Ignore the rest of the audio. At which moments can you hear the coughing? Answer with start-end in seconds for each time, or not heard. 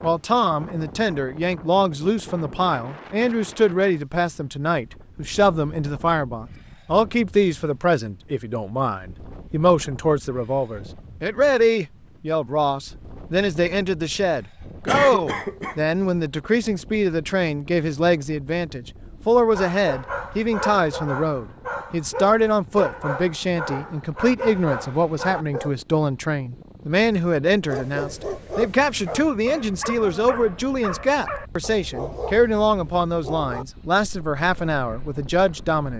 14.8-15.8.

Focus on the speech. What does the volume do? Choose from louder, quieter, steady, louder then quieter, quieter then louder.
steady.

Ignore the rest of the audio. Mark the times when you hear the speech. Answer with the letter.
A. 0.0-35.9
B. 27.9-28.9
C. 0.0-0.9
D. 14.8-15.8
A.